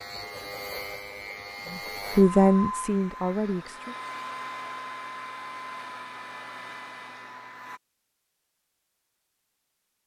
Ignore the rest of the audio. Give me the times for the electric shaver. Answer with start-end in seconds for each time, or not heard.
0.0-2.2.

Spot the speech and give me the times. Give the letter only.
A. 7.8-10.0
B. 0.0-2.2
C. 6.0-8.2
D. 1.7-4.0
D.